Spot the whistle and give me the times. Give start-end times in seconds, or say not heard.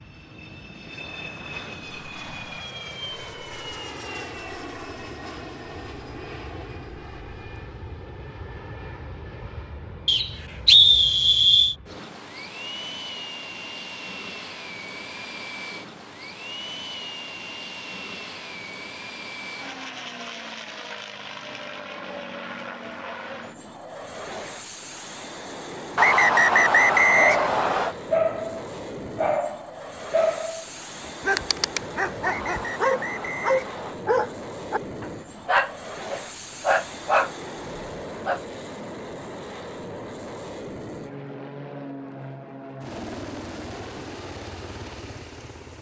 10.1-11.8, 25.9-27.9, 32.2-34.0.